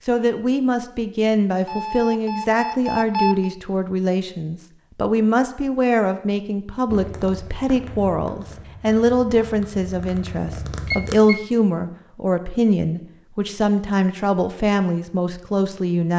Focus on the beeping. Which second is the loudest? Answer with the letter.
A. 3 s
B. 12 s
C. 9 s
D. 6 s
A.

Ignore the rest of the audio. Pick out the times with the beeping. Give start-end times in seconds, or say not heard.
1.6-3.5, 10.7-11.4.